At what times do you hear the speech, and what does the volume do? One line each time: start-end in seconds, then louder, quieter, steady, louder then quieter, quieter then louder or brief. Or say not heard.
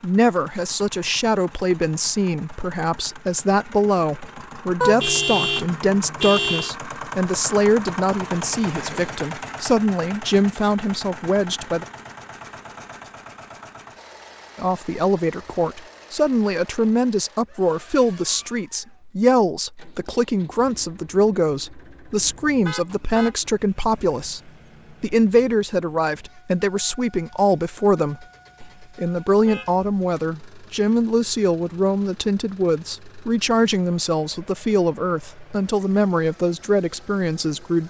0.0-11.8 steady
14.6-37.8 steady.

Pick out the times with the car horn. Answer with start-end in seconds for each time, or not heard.
4.8-6.8, 22.1-23.4, 28.6-29.9.